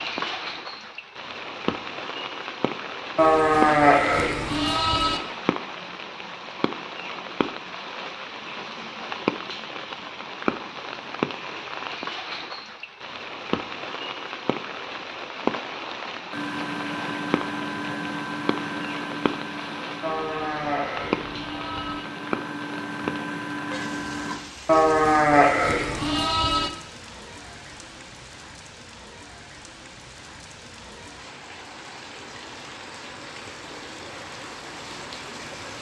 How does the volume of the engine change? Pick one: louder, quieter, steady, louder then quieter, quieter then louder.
quieter then louder.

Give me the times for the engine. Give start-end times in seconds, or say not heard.
16.3-24.4.